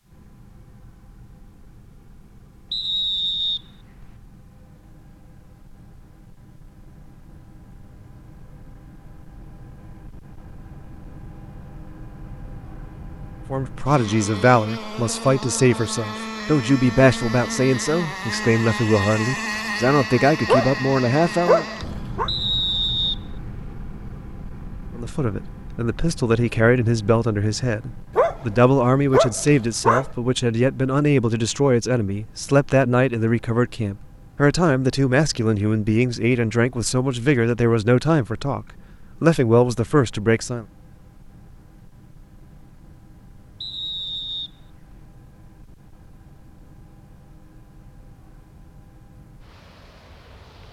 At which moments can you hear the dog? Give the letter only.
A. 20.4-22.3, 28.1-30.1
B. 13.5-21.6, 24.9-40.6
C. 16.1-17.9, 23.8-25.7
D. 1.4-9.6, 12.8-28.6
A.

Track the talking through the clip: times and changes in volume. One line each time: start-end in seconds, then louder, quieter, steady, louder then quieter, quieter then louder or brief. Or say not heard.
13.5-21.6 steady
24.9-40.6 steady.